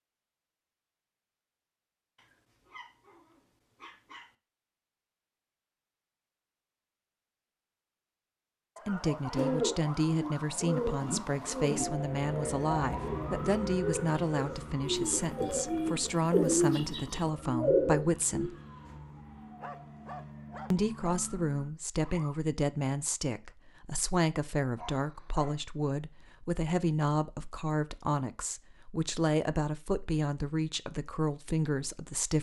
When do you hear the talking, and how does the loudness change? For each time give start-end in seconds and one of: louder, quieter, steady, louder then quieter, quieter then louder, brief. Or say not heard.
8.8-18.6 steady
20.7-32.3 steady.